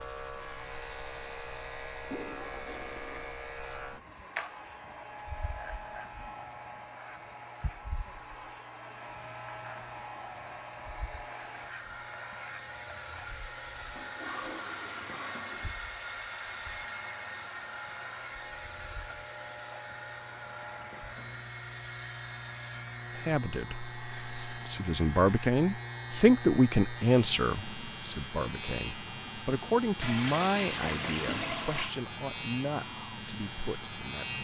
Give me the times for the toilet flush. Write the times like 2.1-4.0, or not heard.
2.1-3.4, 13.9-15.7, 30.0-31.9.